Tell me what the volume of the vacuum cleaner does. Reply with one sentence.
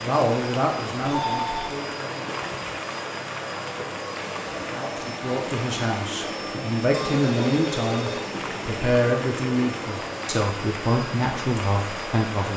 The loudness of the vacuum cleaner stays about the same.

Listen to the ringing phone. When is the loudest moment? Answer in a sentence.
The loudest moment of the ringing phone is at 1 second.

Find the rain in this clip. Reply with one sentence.
You can hear the rain from 0.0 to 12.5 s.